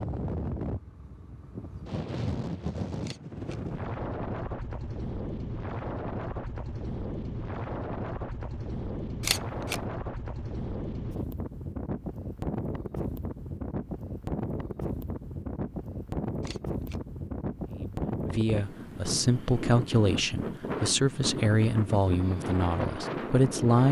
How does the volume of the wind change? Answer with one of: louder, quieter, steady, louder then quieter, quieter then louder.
steady.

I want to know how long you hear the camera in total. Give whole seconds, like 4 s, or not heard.
2 s.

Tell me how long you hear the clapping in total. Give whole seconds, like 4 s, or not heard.
not heard.